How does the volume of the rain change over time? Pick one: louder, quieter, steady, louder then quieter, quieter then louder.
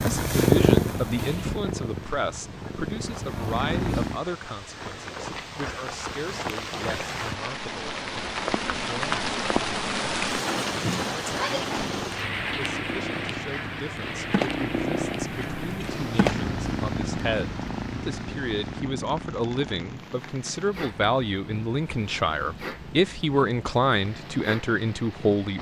louder then quieter.